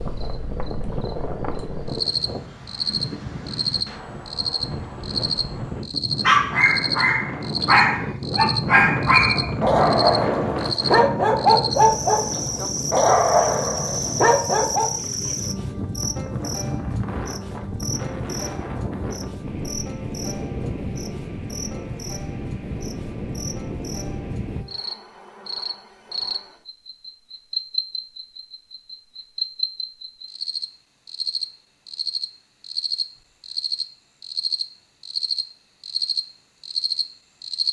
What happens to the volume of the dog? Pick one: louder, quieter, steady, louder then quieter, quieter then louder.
steady.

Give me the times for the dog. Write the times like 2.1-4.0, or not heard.
6.2-14.9.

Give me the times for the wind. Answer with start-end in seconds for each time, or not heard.
0.0-24.6.